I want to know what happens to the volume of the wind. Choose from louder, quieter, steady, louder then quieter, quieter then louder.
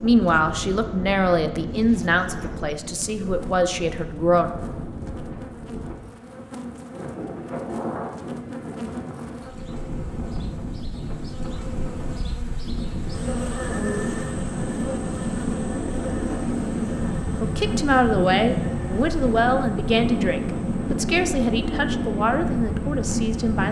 louder.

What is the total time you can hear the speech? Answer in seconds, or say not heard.
11 s.